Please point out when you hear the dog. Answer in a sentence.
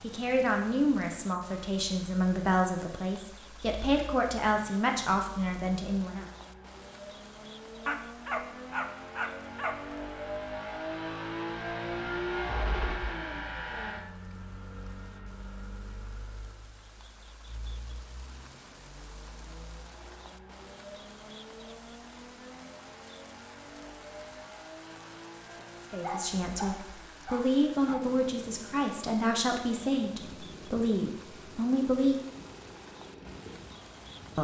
You can hear the dog from 7.8 to 9.8 s and from 26.0 to 28.1 s.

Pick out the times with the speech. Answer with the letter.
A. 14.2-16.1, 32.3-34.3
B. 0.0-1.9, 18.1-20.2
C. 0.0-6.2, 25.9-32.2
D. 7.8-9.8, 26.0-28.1
C.